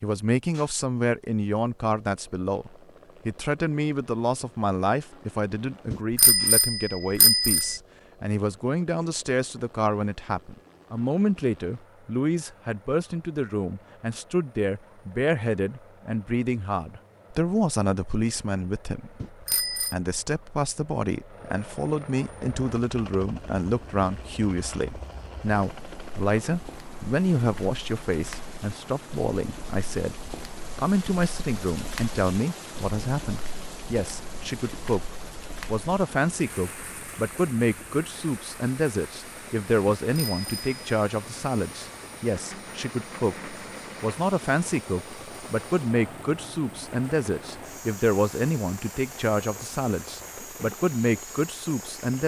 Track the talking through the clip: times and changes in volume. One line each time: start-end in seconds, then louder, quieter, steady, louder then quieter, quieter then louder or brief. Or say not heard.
0.0-30.1 steady
30.8-52.2 steady.